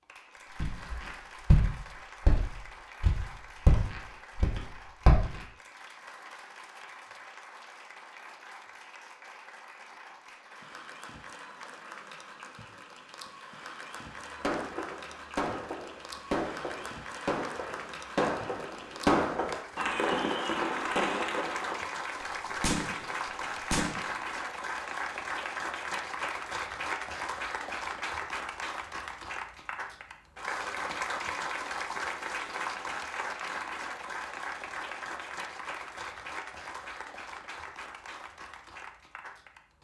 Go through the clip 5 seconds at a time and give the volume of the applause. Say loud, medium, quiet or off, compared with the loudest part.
quiet, quiet, medium, medium, loud, loud, loud, medium.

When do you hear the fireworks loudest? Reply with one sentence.
The volume of the fireworks peaks at 19 seconds.